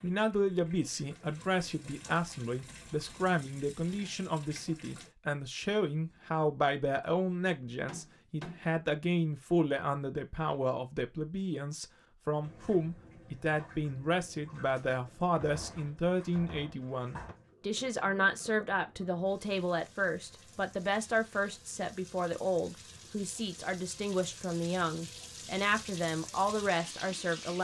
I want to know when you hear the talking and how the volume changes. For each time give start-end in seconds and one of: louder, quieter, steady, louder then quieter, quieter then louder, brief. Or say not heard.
0.0-27.5 steady.